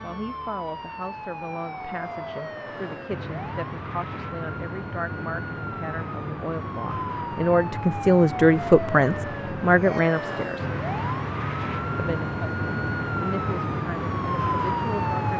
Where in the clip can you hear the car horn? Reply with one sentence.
You can't hear the car horn here.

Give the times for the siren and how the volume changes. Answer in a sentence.
The siren can be heard from 0.0 to 15.3 s, getting louder.